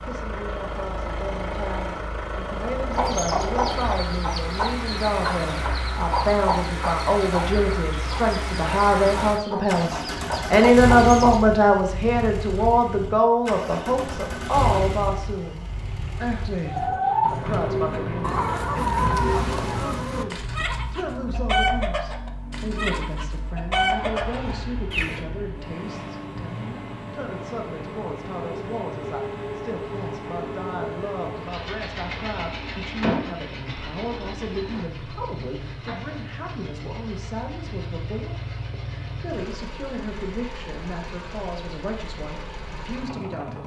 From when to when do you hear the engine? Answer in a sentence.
The engine can be heard from 0.0 to 43.6 s.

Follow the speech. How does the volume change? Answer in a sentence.
The loudness of the speech goes up, then down.